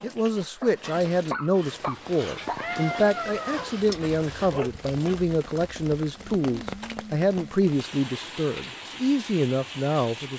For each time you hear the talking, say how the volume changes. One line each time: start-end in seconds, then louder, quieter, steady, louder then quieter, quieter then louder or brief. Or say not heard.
0.0-10.3 steady.